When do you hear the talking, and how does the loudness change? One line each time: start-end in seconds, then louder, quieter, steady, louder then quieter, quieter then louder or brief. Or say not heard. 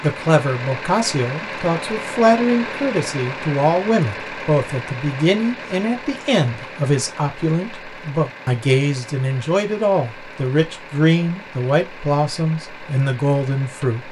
0.0-14.0 steady.